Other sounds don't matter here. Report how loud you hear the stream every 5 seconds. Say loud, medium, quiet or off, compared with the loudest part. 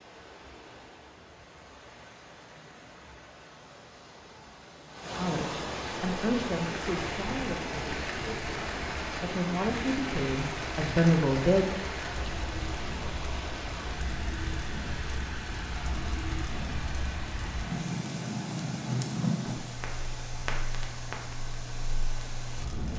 quiet, loud, loud, medium, medium.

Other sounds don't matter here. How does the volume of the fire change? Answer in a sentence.
The loudness of the fire goes up, then down.